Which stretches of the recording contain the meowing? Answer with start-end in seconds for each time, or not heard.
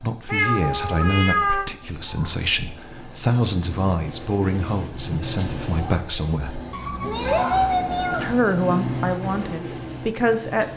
0.2-1.7, 6.7-8.3.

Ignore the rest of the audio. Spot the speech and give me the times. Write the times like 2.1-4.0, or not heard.
0.0-6.6, 8.2-10.7.